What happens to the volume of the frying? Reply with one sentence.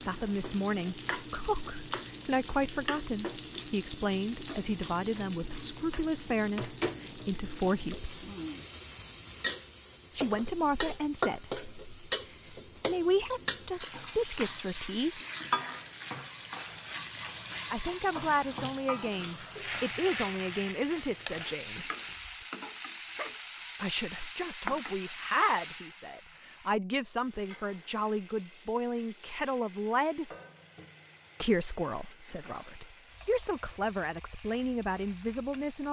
The volume of the frying goes down.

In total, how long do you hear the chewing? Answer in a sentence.
The chewing can't be heard in this clip.